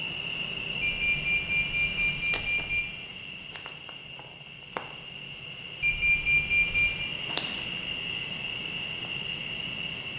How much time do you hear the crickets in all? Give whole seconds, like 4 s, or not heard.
10 s.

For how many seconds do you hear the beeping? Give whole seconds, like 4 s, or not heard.
3 s.